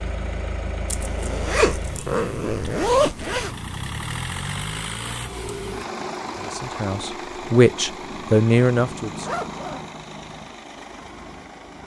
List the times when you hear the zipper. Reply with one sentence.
You can hear the zipper from 0.8 to 3.5 s and from 9.2 to 9.9 s.